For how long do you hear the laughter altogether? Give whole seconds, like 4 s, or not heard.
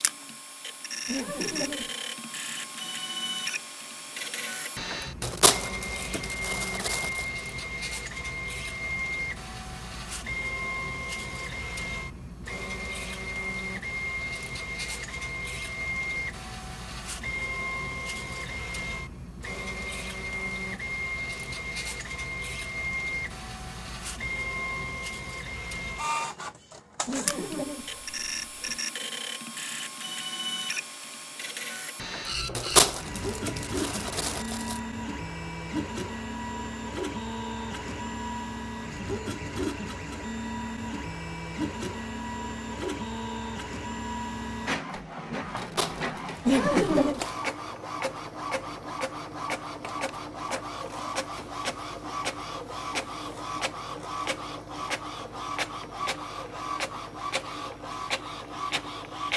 3 s.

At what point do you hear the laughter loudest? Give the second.
47 s.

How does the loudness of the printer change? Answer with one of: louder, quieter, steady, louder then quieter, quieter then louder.
steady.